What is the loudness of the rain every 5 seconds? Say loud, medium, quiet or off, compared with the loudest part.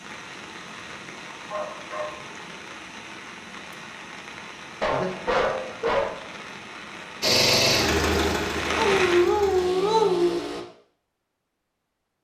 medium, loud, off.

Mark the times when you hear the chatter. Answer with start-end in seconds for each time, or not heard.
not heard.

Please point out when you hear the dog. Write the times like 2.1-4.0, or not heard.
1.5-2.2, 4.8-6.2, 8.8-10.4.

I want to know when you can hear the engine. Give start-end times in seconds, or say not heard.
7.2-10.7.